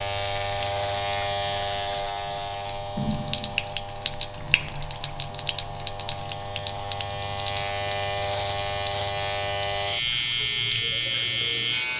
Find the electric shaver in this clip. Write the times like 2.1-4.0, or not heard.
0.0-11.9.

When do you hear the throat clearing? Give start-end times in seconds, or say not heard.
not heard.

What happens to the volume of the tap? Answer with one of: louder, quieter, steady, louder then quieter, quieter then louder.
louder then quieter.